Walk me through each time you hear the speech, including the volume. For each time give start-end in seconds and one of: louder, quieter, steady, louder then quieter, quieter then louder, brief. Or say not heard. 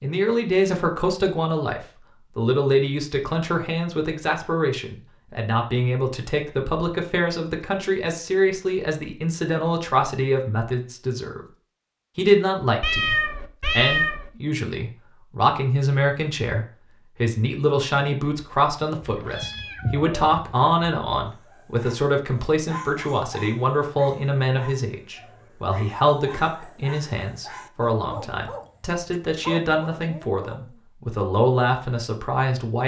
0.0-11.4 steady
12.2-32.8 steady.